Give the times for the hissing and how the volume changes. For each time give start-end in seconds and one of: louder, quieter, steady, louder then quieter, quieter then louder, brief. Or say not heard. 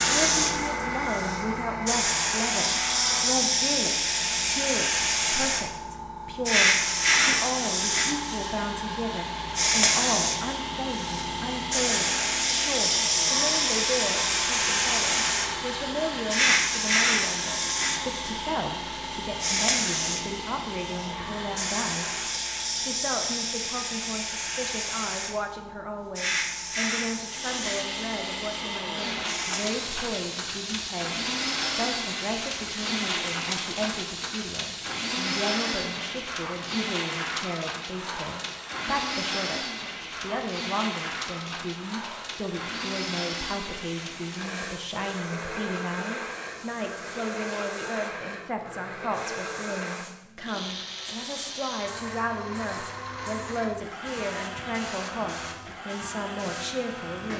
0.0-57.3 quieter.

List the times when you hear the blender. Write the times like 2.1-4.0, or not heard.
0.0-3.5, 6.8-22.4, 27.2-57.3.